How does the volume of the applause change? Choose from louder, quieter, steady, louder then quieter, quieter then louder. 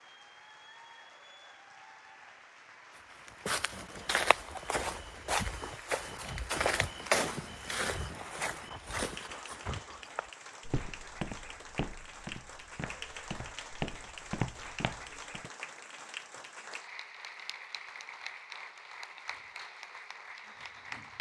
louder.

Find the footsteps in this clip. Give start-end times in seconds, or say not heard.
3.2-15.5.